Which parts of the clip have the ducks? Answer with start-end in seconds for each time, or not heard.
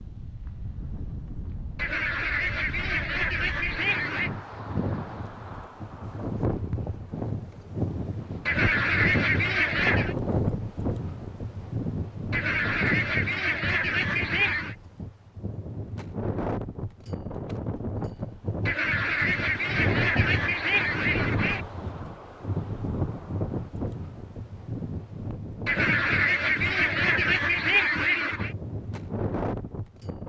1.8-4.3, 8.4-10.2, 12.3-14.8, 18.6-21.6, 25.6-28.5.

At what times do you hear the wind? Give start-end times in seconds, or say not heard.
0.0-30.2.